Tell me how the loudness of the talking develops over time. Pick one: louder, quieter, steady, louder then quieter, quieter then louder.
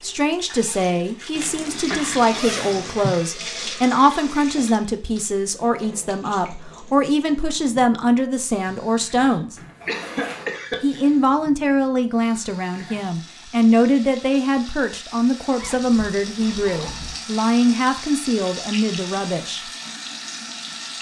steady.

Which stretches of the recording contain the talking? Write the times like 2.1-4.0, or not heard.
0.0-9.6, 10.8-19.6.